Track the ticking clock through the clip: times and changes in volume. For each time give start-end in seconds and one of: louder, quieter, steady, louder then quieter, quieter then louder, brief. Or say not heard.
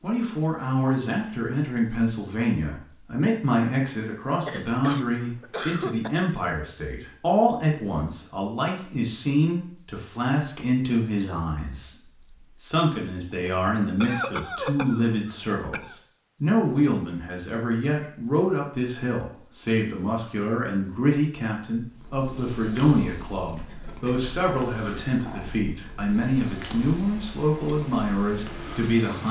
not heard.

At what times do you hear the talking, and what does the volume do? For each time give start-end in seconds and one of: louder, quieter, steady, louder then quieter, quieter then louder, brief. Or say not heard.
0.0-29.2 steady.